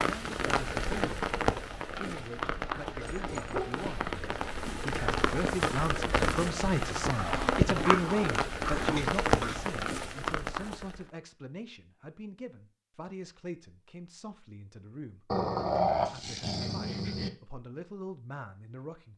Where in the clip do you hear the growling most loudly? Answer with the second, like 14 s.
16 s.